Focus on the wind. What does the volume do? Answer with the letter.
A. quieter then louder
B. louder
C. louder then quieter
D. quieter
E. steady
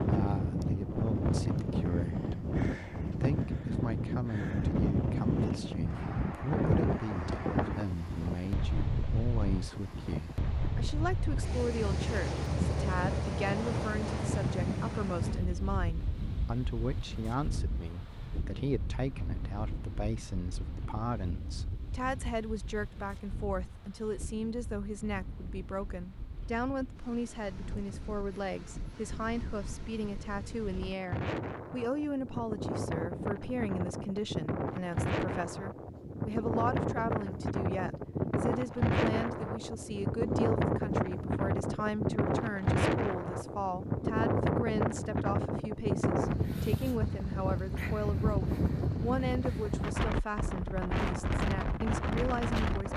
A.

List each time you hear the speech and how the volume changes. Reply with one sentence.
The speech can be heard from 0.0 to 52.9 s, at a steady volume.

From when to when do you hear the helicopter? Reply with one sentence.
You can't hear the helicopter here.